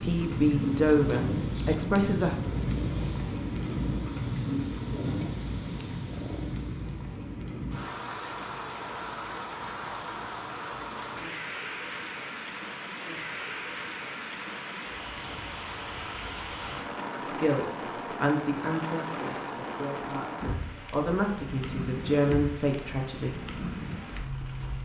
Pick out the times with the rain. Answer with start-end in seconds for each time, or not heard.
0.0-24.7.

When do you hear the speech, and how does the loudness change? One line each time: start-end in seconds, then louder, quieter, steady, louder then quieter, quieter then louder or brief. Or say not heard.
0.0-2.4 brief
17.3-23.4 quieter then louder.